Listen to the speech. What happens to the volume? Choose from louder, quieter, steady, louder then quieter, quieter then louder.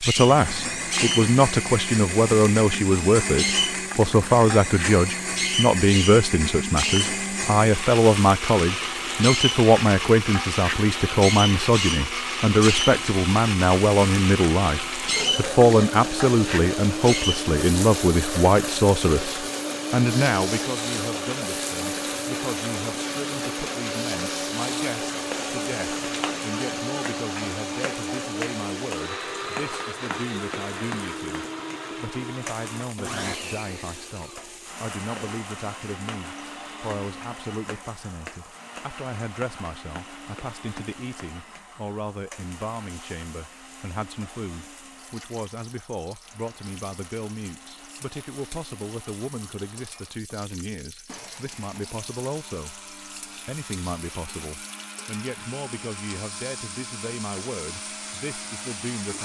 quieter.